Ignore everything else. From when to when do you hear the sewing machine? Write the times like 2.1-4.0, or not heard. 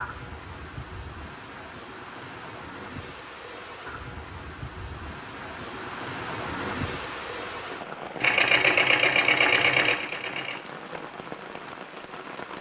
8.2-10.6.